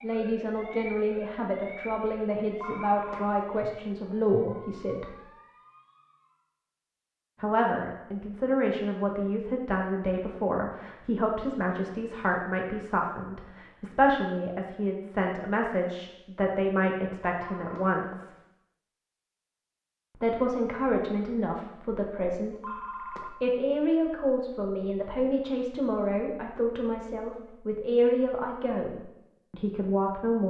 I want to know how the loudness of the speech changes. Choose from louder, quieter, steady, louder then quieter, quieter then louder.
steady.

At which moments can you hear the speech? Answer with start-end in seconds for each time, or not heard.
0.0-5.2, 7.4-18.3, 20.1-30.4.